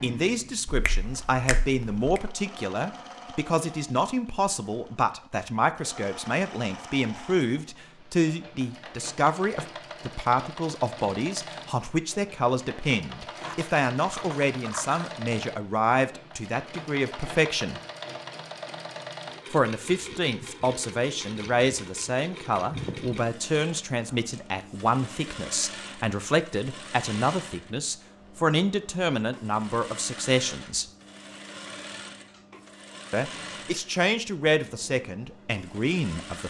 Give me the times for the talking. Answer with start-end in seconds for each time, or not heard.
0.0-17.8, 19.5-30.9, 33.1-36.4.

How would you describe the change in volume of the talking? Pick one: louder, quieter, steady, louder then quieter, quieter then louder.
steady.